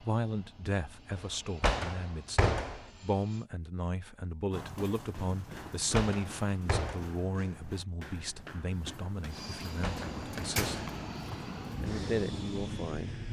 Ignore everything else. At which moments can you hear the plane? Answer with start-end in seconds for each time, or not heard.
0.0-3.5, 9.3-13.2.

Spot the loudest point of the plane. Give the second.
12 s.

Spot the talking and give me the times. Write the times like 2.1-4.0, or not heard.
0.0-10.8, 11.8-13.2.